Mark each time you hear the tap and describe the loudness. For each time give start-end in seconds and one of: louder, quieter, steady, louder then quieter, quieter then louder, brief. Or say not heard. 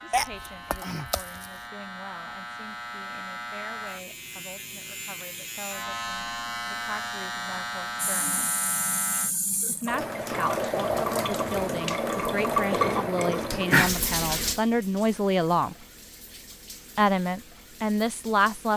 8.0-18.7 louder then quieter.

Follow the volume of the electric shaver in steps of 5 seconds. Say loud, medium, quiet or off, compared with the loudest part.
medium, loud, off, off.